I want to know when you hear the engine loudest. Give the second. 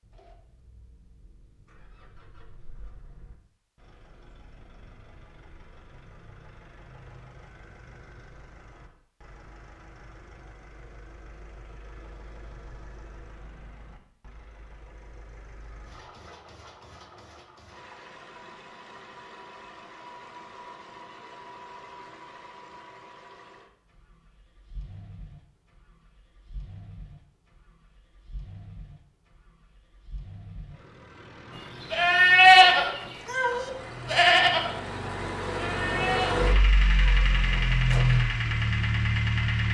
38 s.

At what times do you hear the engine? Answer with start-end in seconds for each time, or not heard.
0.0-39.6.